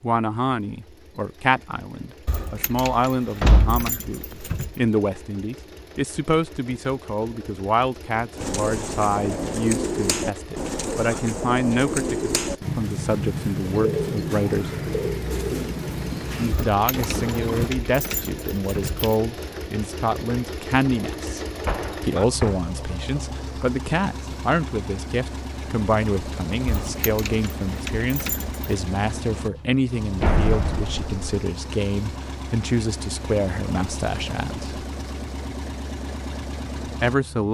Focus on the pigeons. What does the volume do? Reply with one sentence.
The loudness of the pigeons stays about the same.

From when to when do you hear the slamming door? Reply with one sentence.
You can hear the slamming door from 3.4 to 3.9 s, from 21.6 to 22.6 s and from 30.2 to 31.2 s.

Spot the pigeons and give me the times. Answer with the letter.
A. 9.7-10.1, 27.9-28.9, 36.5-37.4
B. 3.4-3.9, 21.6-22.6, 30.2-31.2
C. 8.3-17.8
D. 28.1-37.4
C.